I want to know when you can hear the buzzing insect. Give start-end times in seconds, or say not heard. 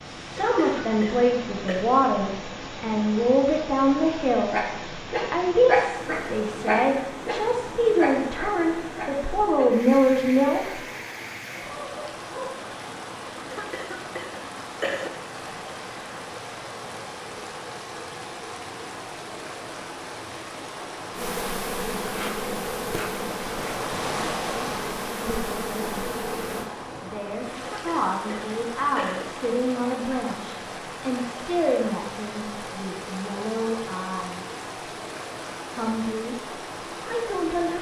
21.1-26.7.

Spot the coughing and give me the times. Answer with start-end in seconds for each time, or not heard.
0.4-1.9, 13.5-15.1, 27.6-29.2.